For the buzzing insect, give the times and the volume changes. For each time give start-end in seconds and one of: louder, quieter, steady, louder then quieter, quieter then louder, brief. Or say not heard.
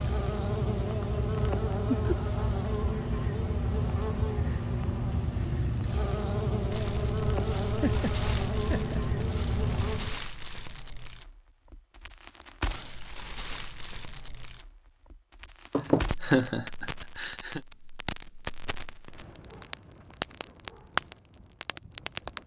0.0-10.2 steady.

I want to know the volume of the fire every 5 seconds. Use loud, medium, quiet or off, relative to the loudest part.
off, medium, medium, medium, loud.